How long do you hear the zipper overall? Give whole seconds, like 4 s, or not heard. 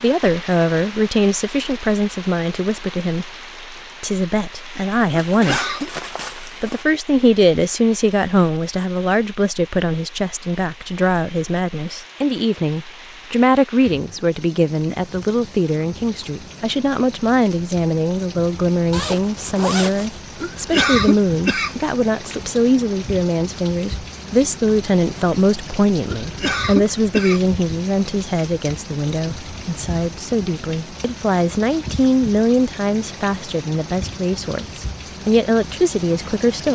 3 s.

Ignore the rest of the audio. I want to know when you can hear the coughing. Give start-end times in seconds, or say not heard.
5.3-5.9, 20.4-21.8, 26.1-27.5.